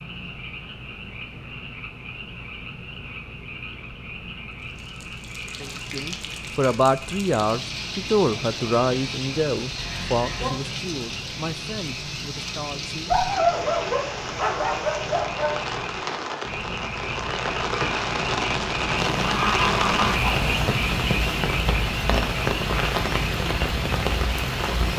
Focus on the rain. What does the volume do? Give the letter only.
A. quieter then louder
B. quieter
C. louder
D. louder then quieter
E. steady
C.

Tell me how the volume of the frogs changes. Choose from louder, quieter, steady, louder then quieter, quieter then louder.
louder.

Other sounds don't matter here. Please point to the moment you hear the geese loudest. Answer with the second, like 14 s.
20 s.